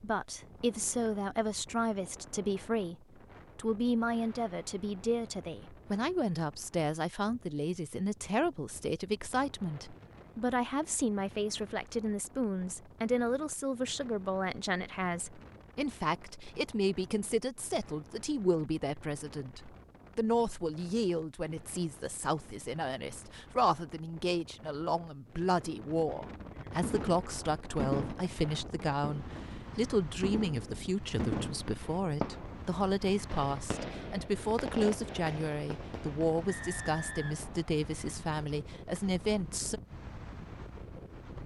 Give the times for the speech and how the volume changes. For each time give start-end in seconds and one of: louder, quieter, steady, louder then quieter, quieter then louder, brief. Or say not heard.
0.0-3.0 brief
3.5-39.8 steady.